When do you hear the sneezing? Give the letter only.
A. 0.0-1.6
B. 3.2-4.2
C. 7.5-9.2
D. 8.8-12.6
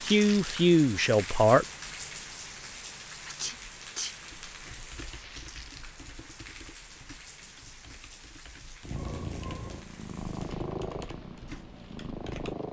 B.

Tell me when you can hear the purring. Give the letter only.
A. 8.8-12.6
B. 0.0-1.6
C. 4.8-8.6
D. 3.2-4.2
A.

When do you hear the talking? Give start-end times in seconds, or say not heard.
0.0-1.6.